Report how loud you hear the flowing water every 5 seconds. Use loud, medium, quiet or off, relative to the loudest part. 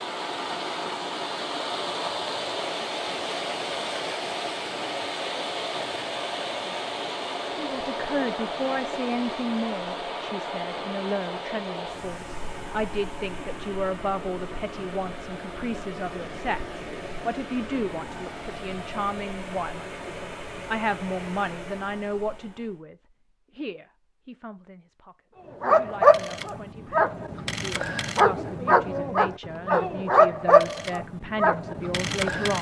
loud, loud, medium, medium, medium, off, off.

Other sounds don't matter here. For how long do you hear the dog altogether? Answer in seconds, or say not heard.
7 s.